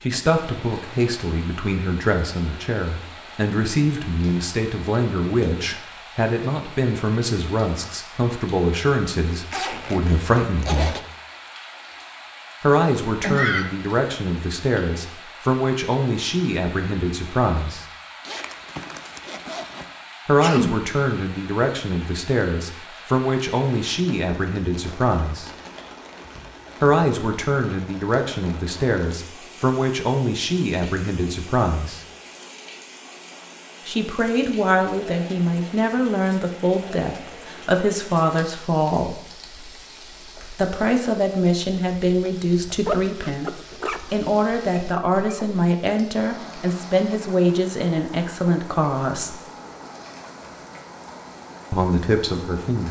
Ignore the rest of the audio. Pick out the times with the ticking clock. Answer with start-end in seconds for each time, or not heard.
not heard.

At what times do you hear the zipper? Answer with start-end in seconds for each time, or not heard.
9.5-11.0, 18.2-19.9, 42.6-44.2.